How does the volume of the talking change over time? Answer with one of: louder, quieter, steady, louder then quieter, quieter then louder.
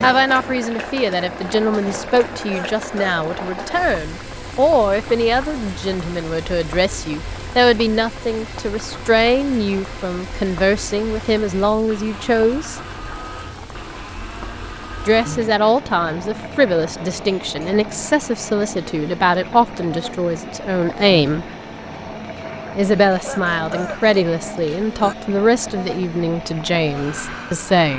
steady.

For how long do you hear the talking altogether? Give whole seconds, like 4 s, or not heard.
24 s.